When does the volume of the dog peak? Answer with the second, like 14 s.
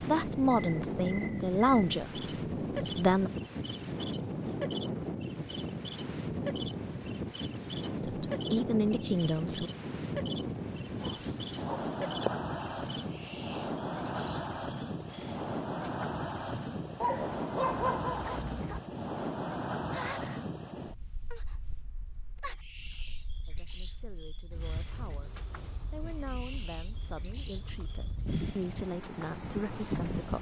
18 s.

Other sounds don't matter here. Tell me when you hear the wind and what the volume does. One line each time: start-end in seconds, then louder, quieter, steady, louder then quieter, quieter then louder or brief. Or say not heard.
0.0-30.3 quieter.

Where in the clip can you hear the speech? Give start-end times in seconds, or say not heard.
0.1-2.2, 2.8-3.3, 8.0-9.7, 23.4-30.3.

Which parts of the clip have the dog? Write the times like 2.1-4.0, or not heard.
11.0-12.3, 17.0-18.8.